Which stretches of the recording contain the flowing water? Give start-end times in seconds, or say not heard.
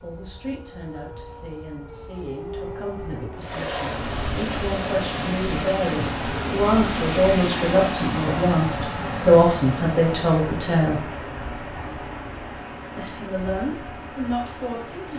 3.4-15.1.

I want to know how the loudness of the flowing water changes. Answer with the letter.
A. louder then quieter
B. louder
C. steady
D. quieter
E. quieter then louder
D.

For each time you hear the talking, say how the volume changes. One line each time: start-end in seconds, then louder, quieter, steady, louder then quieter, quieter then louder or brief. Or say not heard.
0.0-11.0 louder
12.9-15.1 brief.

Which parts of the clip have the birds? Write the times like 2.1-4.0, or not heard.
not heard.